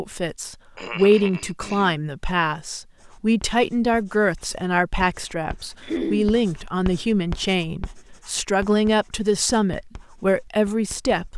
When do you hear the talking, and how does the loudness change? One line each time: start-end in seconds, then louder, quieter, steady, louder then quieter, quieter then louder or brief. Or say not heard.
0.0-11.3 steady.